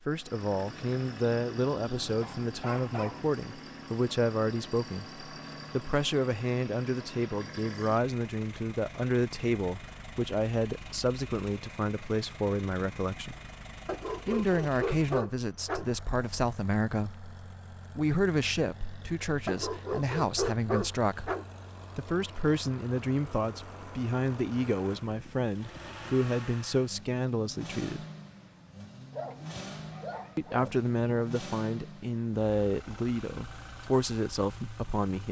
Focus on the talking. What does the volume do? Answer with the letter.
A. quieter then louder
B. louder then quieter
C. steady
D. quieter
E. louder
C.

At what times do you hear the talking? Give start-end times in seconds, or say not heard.
0.1-13.3, 14.2-17.3, 17.9-21.3, 21.9-28.0, 30.4-35.2.